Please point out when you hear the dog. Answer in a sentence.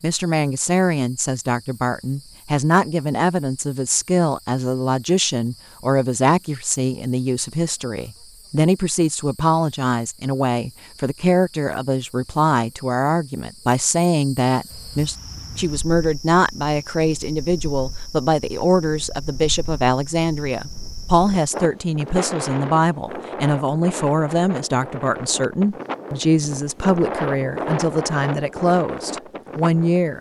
You can't hear the dog here.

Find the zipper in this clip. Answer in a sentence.
The zipper can't be heard in this clip.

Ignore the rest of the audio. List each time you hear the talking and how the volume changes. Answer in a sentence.
The talking can be heard from 0.0 to 30.1 s, at a steady volume.